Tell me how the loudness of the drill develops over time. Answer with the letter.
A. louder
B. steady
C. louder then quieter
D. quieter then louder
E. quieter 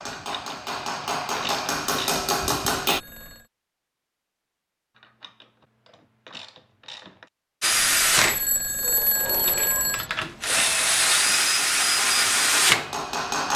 D.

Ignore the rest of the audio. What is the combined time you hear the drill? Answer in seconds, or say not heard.
6 s.